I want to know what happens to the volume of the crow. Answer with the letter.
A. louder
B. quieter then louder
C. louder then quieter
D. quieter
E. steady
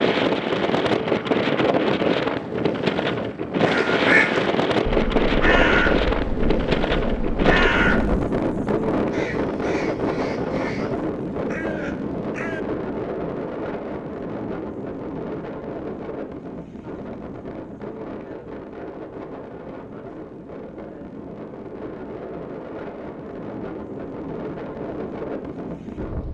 D.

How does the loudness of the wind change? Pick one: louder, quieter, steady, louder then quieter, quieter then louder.
quieter.